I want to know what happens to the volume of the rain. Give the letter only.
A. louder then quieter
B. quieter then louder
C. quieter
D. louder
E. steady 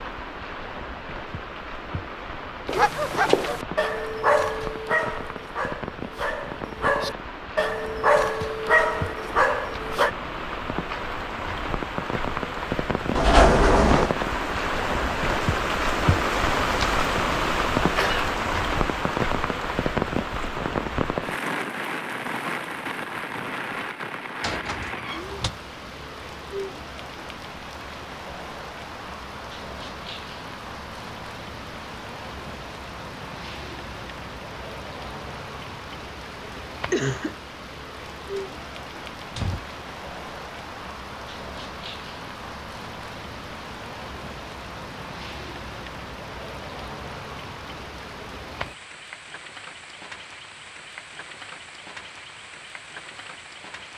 A.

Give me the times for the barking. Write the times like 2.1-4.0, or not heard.
2.6-10.1.